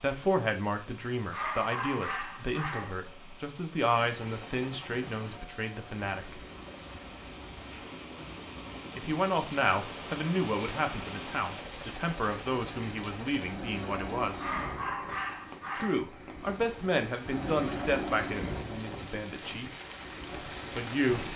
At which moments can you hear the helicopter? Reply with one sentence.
The helicopter can be heard from 3.8 to 21.3 s.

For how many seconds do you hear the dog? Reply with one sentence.
You can hear the dog for 3 seconds altogether.